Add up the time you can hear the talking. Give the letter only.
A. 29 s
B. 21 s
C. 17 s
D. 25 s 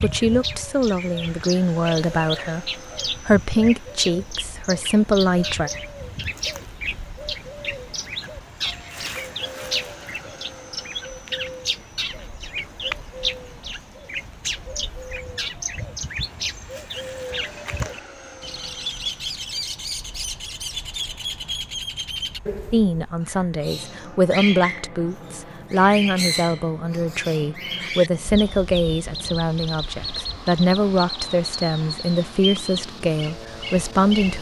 C.